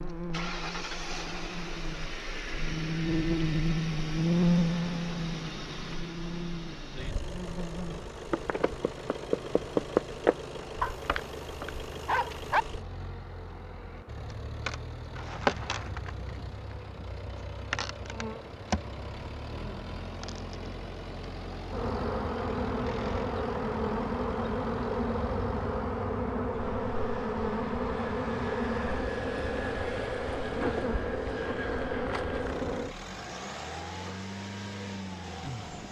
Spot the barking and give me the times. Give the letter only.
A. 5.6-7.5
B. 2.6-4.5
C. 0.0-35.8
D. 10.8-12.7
D.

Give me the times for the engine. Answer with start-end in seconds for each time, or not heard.
0.0-35.8.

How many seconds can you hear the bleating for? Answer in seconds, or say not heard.
not heard.